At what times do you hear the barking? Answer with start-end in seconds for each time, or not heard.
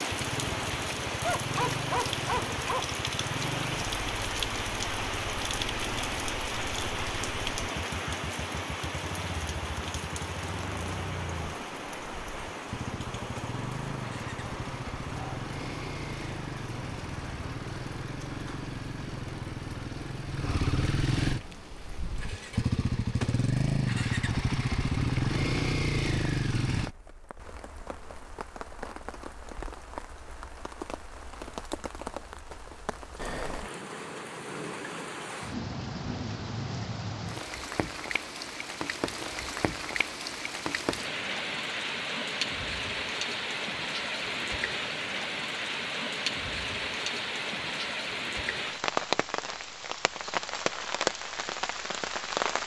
1.2-3.0.